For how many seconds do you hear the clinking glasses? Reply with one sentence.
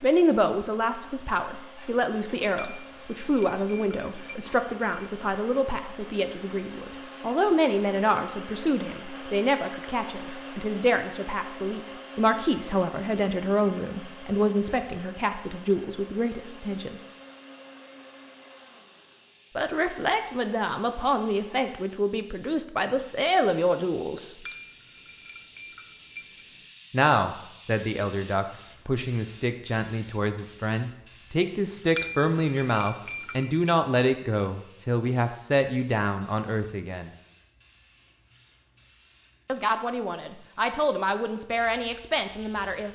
The clinking glasses can be heard for 6 seconds in total.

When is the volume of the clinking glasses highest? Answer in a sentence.
The loudest moment of the clinking glasses is at 32 seconds.